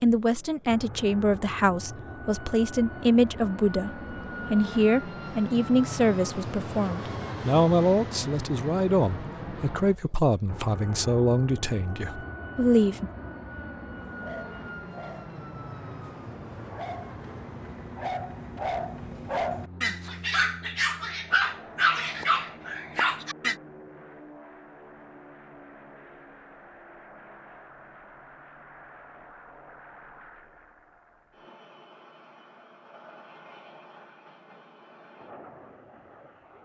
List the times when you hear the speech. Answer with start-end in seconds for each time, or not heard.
0.0-13.1.